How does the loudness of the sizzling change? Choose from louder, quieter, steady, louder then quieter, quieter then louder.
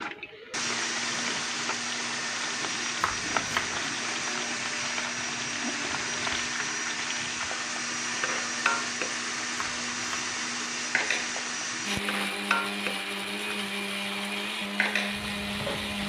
steady.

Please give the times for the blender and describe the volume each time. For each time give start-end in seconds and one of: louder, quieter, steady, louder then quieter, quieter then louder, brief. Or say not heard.
0.0-16.0 steady.